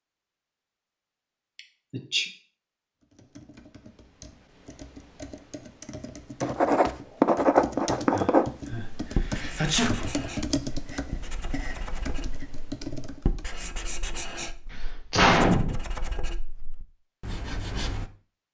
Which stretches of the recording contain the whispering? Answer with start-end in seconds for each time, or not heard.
not heard.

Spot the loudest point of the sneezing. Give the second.
15 s.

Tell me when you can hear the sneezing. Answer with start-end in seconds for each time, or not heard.
1.6-2.2, 8.1-10.1, 14.7-15.8.